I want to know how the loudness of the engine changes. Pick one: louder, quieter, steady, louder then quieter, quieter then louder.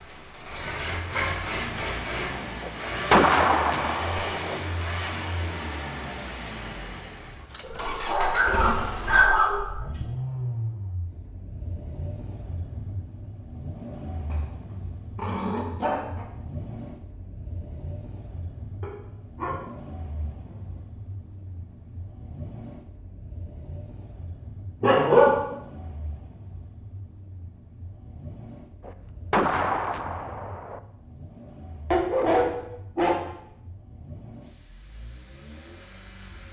quieter.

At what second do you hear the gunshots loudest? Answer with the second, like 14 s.
3 s.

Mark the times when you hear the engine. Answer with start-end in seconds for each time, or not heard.
0.0-36.4.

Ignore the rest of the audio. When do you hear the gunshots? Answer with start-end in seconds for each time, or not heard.
2.6-4.6, 28.9-30.8.